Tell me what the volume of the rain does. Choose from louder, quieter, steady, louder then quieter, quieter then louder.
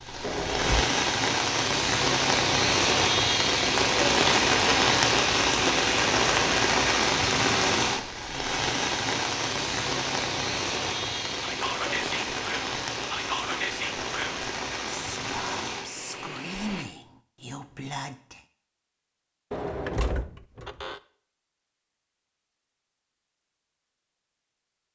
quieter.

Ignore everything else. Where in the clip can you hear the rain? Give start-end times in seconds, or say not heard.
0.0-16.9.